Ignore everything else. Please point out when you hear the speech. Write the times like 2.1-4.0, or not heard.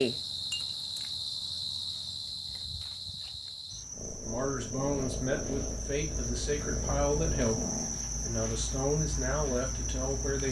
4.2-10.4.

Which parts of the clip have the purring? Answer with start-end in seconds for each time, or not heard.
3.9-10.4.